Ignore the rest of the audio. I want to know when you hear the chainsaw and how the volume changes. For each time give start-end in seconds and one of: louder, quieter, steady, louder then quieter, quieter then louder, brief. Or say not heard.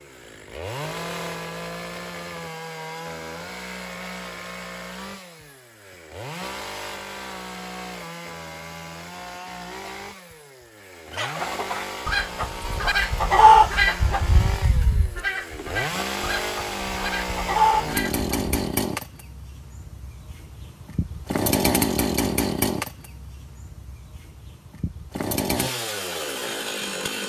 0.0-27.2 louder.